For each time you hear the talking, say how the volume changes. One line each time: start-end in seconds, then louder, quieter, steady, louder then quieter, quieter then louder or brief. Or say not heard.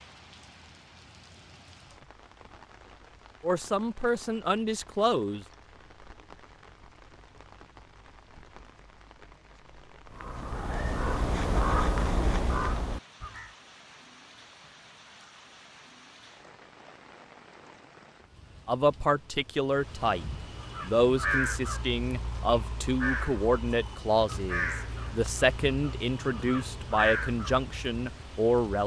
3.4-5.5 brief
18.6-28.8 steady.